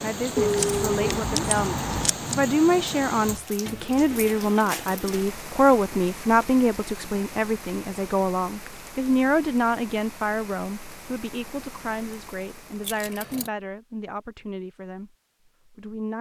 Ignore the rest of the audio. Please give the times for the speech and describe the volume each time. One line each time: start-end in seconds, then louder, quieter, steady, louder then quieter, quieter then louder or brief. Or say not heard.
0.0-15.1 quieter
15.7-16.1 brief.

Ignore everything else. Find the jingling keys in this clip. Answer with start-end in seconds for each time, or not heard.
0.3-2.4, 12.8-13.5.